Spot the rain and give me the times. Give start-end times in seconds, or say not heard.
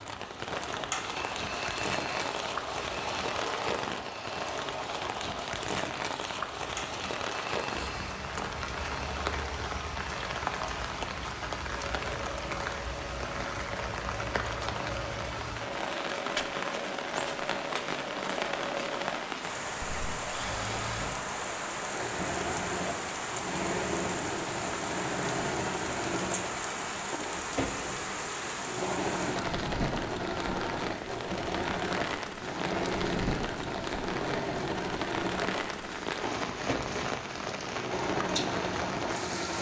0.0-39.5.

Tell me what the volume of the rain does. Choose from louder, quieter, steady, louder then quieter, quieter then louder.
steady.